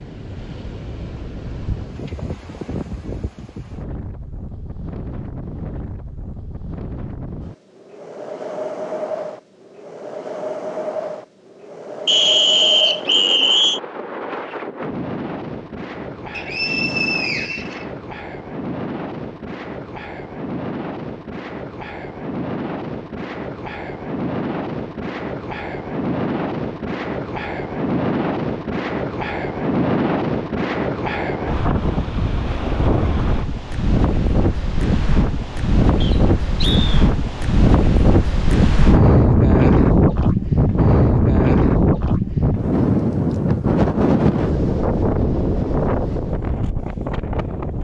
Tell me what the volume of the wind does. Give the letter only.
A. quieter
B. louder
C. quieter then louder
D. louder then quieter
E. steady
B.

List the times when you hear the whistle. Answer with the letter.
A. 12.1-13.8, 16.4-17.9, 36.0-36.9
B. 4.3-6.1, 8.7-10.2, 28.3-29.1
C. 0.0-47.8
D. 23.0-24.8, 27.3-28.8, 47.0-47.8
A.